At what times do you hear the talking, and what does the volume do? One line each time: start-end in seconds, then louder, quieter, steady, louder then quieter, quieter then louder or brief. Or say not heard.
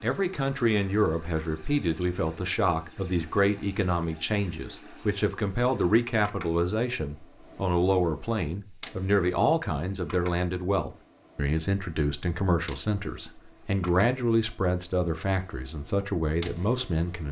0.0-17.2 steady.